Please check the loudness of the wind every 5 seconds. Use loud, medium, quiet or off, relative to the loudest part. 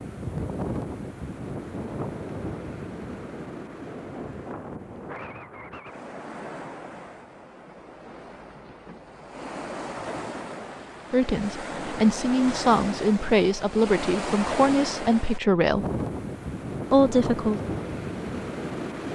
loud, medium, loud, loud.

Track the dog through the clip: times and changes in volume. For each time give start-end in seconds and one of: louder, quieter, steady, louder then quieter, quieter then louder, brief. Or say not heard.
not heard.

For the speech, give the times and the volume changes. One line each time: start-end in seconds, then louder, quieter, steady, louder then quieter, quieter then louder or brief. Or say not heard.
11.1-15.8 steady
16.9-17.6 brief.